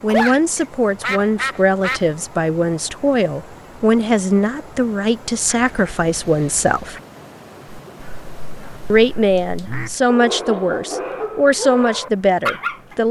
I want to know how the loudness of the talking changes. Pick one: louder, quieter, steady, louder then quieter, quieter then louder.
steady.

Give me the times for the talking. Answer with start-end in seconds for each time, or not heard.
0.0-7.0, 8.9-13.0.